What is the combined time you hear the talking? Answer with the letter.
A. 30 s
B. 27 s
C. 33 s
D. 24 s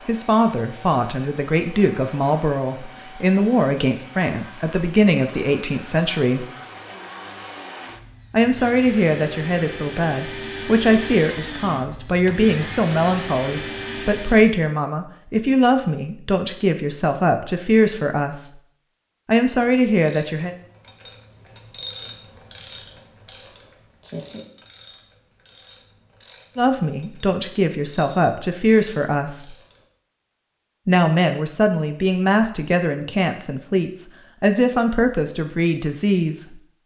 B.